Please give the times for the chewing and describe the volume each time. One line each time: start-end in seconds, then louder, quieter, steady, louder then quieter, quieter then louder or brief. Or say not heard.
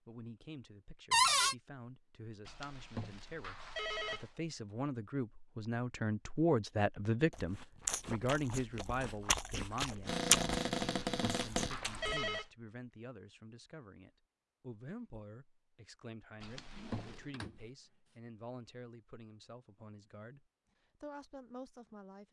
7.3-12.2 louder then quieter.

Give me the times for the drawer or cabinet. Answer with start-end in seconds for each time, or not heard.
1.1-1.6, 10.1-11.8, 16.6-17.6.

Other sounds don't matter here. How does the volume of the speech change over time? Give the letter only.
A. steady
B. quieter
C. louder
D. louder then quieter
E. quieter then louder
D.